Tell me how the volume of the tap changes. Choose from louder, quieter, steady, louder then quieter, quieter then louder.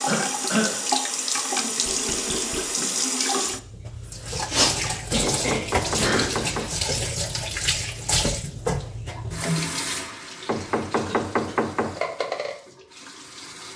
quieter.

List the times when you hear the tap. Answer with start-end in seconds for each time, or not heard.
0.0-13.7.